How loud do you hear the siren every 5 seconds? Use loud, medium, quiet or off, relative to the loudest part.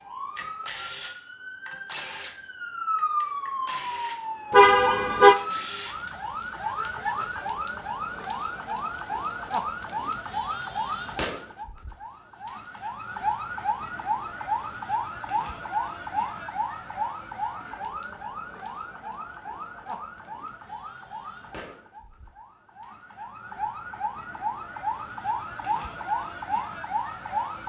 loud, loud, loud, loud, medium, loud.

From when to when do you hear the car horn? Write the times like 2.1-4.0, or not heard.
4.5-5.3.